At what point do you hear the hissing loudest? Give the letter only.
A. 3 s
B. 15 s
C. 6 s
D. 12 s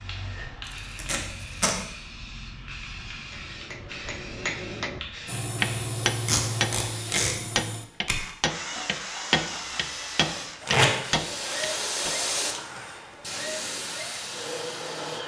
D.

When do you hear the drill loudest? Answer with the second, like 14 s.
6 s.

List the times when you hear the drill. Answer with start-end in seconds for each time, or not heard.
5.2-15.2.